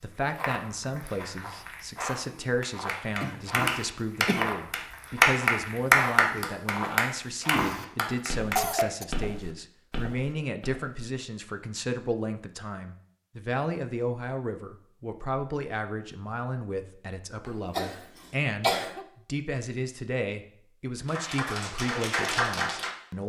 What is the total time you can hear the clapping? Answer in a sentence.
The clapping can be heard for 8 seconds in total.